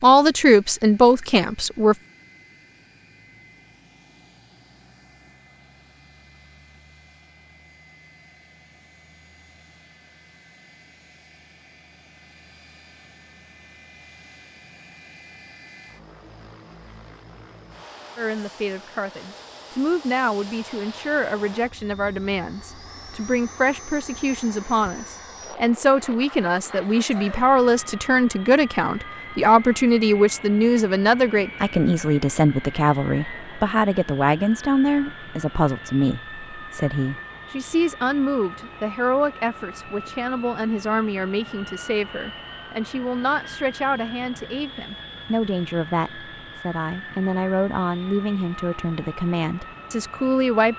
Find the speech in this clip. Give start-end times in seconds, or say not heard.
0.0-1.9, 18.1-50.7.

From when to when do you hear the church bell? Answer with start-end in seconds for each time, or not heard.
not heard.